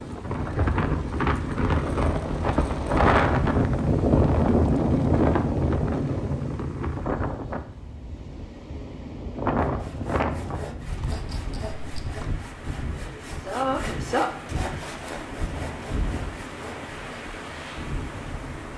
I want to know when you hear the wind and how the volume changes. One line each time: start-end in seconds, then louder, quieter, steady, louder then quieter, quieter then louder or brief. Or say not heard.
0.0-18.7 quieter.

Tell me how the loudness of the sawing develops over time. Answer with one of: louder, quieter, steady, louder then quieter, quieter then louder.
louder then quieter.